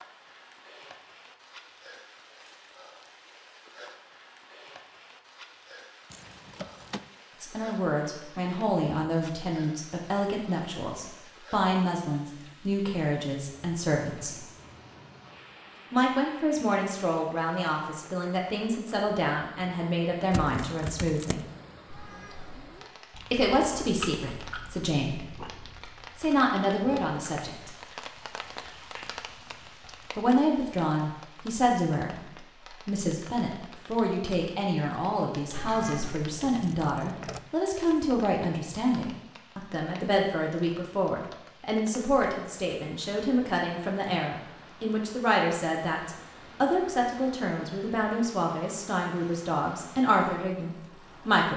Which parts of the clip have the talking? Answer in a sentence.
You can hear the talking from 7.4 to 14.4 s, from 15.9 to 21.4 s, from 23.3 to 27.7 s and from 30.1 to 51.5 s.